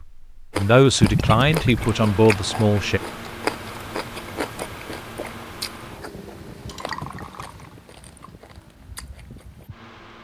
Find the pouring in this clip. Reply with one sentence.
The pouring can be heard from 1.0 to 2.0 s and from 6.7 to 7.8 s.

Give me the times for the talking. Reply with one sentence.
The talking can be heard from 0.0 to 3.0 s.